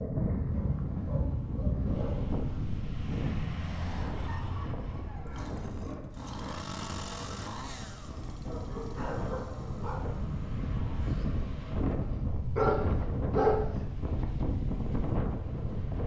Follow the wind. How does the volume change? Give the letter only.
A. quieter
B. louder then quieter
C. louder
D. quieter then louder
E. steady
D.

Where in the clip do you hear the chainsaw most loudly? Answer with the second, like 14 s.
7 s.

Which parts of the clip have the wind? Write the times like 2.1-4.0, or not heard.
0.0-16.0.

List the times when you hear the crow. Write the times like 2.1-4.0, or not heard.
not heard.